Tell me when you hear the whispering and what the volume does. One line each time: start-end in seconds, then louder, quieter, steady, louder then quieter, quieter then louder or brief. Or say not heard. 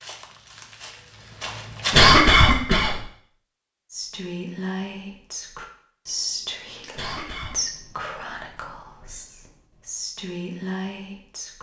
3.9-11.5 quieter then louder.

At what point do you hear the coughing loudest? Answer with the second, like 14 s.
2 s.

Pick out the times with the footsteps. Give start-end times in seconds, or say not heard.
0.0-2.0.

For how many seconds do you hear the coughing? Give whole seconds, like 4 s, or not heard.
2 s.